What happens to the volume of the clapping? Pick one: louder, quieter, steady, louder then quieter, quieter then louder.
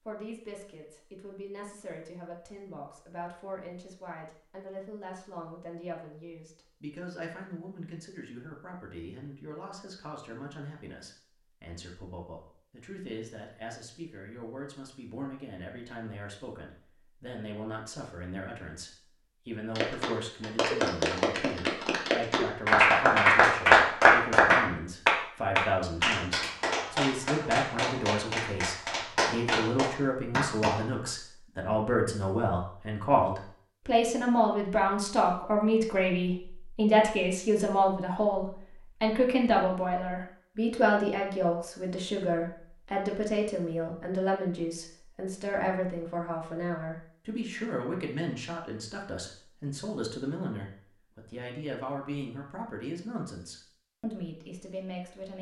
louder then quieter.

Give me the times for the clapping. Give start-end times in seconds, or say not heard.
19.8-30.9.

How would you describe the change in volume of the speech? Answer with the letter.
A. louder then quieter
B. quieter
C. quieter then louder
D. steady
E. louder
A.